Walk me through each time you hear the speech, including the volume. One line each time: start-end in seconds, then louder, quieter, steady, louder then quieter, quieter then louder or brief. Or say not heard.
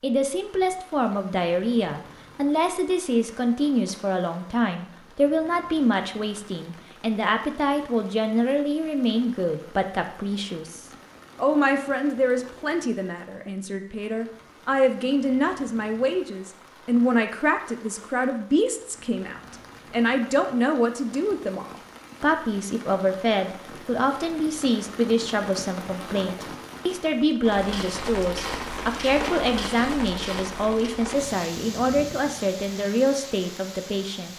0.0-34.3 steady.